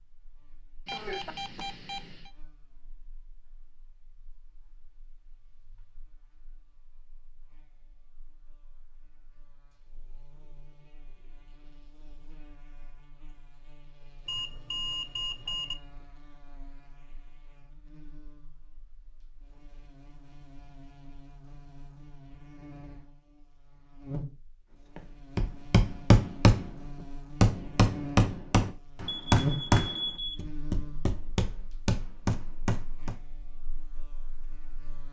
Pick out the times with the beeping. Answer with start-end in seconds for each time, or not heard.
0.8-2.3, 14.2-15.8, 29.1-30.4.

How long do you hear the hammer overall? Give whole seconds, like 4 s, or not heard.
7 s.